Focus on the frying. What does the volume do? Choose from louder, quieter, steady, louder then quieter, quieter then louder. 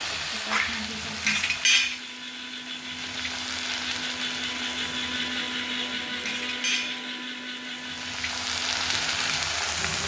quieter then louder.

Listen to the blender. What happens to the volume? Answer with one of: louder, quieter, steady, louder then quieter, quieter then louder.
louder then quieter.